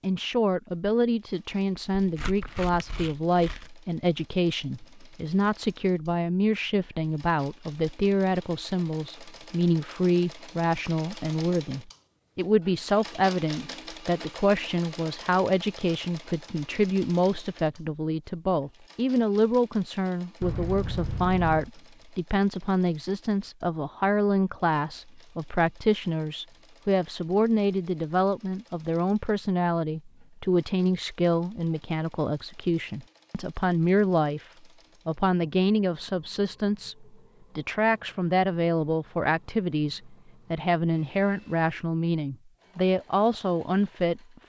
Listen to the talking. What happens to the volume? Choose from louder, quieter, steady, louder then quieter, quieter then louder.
steady.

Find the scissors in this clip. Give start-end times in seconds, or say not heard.
20.4-21.7.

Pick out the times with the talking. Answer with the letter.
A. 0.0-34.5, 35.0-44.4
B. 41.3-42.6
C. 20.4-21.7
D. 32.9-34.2
A.